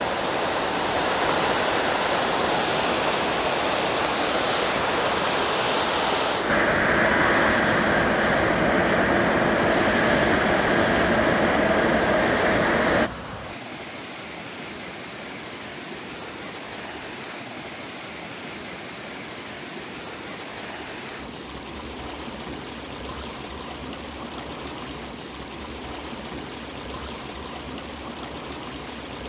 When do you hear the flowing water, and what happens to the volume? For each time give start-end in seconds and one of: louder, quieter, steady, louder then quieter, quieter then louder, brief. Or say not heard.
0.0-29.2 quieter.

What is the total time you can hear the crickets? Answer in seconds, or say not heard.
not heard.